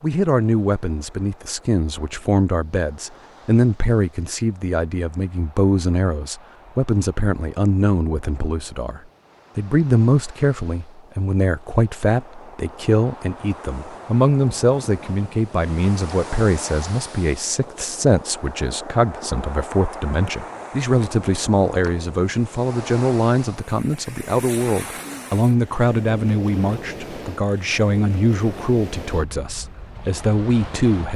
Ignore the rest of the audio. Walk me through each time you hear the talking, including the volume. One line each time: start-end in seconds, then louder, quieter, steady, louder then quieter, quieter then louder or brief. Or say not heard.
0.0-31.1 steady.